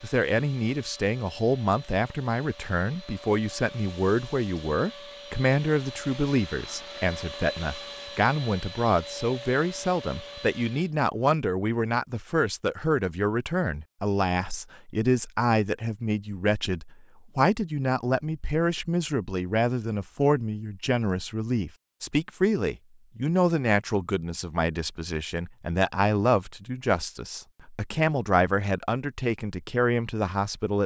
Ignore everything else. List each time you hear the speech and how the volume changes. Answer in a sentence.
The speech can be heard from 0.0 to 30.8 s, at a steady volume.